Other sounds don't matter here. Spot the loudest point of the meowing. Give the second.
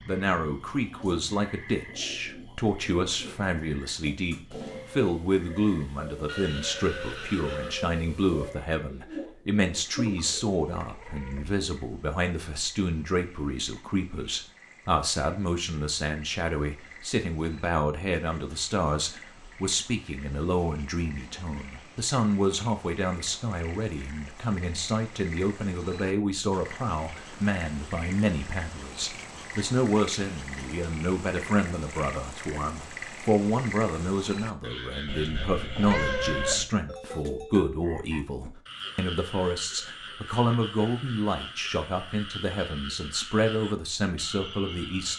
36 s.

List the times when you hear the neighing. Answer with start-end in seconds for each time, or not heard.
6.2-7.8.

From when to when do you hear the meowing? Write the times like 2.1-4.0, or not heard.
10.1-11.6, 35.0-36.7.